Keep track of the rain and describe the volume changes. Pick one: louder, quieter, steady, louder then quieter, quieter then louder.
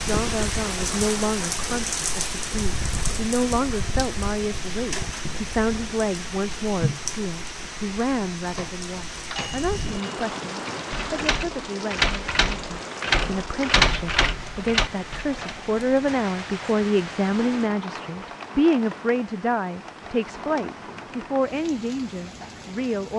quieter.